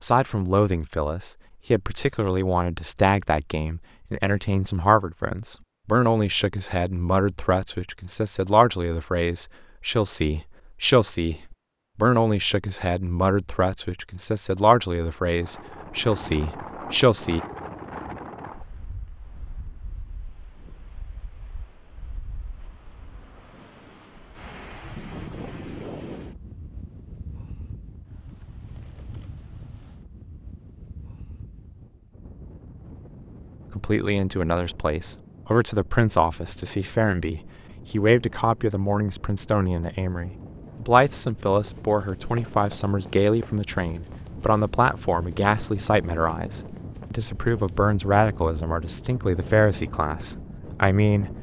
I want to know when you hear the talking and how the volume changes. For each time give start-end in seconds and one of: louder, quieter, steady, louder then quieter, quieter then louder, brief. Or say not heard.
0.0-17.4 steady
33.7-51.3 steady.